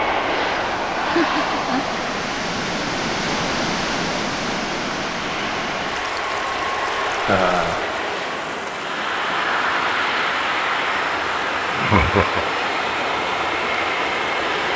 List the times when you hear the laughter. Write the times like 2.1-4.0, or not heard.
1.0-1.9, 7.2-7.8, 11.8-12.4.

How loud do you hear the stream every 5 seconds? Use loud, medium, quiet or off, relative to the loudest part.
loud, medium, medium.